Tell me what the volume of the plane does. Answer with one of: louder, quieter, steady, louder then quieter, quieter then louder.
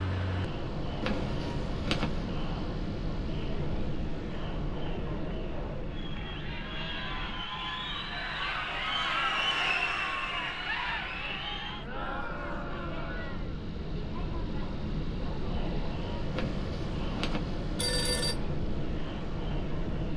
quieter then louder.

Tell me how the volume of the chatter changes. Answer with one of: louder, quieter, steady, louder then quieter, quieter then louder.
louder then quieter.